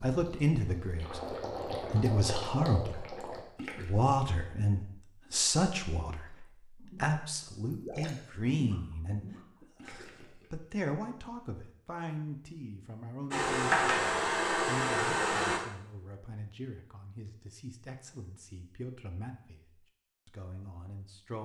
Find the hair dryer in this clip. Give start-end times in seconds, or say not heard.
13.3-15.6.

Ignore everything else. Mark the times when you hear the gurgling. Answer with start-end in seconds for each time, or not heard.
0.1-3.9, 6.2-10.7.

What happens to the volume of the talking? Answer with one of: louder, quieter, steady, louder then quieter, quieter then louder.
quieter.